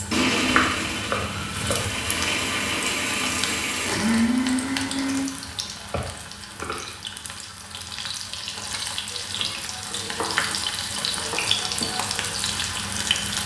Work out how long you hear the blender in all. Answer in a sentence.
The blender can be heard for 5 seconds in total.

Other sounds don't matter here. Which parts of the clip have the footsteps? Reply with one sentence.
You can't hear the footsteps here.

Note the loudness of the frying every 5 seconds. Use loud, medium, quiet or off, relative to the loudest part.
medium, medium, loud.